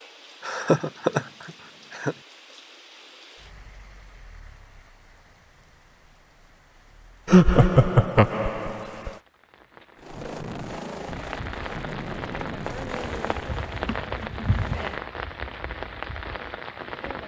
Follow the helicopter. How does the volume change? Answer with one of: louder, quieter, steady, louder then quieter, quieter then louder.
quieter.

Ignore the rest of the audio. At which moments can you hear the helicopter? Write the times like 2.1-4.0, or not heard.
9.9-15.1.